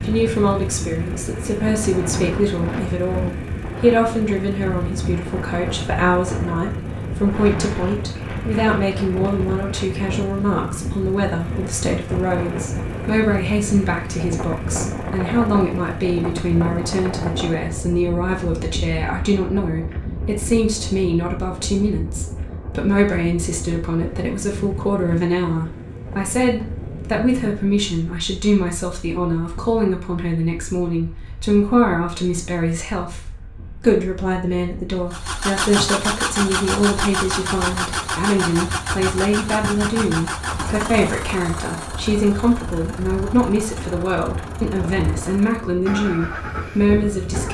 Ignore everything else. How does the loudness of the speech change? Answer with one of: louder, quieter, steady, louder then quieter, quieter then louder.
steady.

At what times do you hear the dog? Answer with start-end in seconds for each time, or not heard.
not heard.